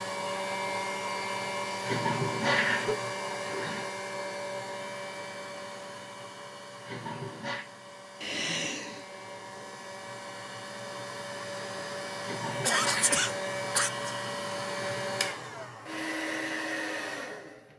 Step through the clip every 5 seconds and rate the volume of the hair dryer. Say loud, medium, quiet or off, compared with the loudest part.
loud, medium, loud, loud.